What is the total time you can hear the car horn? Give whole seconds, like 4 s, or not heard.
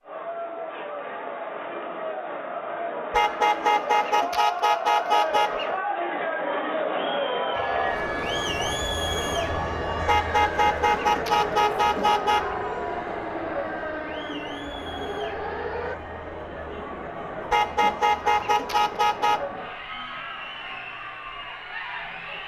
7 s.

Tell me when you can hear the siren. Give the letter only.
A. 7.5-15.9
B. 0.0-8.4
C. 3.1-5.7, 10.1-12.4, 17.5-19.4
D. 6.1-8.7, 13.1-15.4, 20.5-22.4
A.